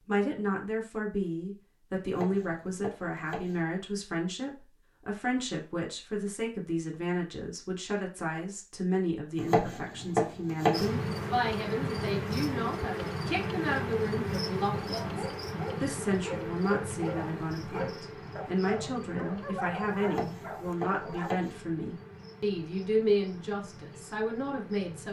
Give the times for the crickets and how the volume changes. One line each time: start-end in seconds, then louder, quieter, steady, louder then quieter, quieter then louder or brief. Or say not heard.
10.7-25.0 quieter.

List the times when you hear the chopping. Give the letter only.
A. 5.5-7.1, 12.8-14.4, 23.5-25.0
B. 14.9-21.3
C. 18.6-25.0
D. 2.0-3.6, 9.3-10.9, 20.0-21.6
D.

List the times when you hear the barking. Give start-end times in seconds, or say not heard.
14.9-21.3.